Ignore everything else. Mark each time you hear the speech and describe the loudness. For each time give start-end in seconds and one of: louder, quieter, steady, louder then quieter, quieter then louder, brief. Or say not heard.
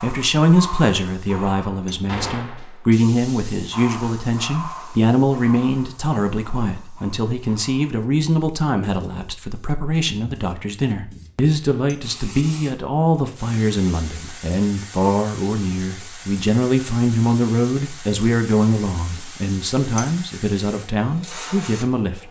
0.0-22.2 steady.